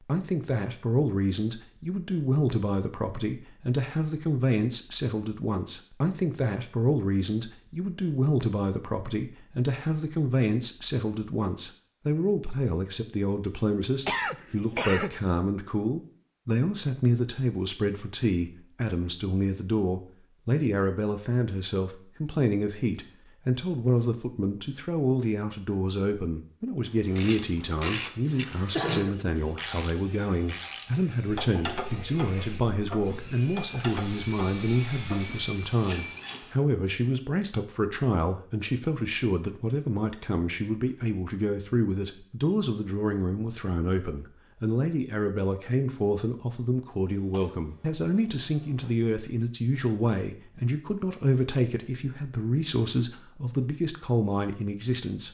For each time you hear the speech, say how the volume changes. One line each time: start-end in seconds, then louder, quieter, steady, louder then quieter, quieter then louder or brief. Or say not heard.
0.0-55.2 steady.